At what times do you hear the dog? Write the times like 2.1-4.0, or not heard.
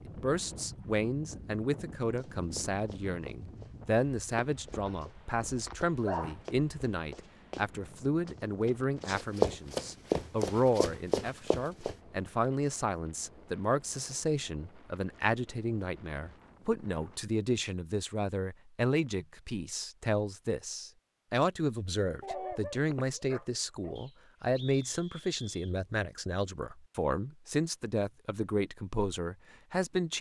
4.8-6.4, 22.2-23.9.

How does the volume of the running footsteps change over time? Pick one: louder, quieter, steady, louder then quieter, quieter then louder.
louder then quieter.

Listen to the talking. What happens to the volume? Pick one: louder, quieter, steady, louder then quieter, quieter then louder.
steady.